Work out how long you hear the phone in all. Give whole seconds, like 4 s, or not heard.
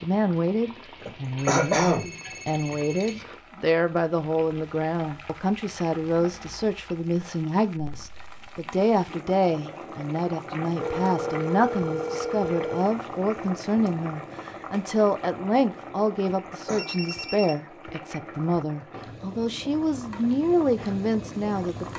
5 s.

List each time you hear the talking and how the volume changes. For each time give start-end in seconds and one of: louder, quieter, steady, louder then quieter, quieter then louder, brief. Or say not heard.
0.0-21.9 steady.